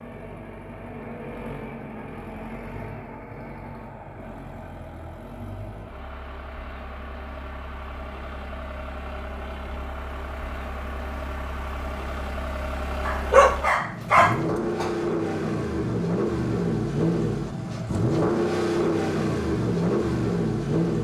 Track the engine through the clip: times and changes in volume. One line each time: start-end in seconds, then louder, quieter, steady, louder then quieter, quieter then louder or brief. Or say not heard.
0.0-21.0 louder.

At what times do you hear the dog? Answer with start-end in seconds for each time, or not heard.
13.1-14.8.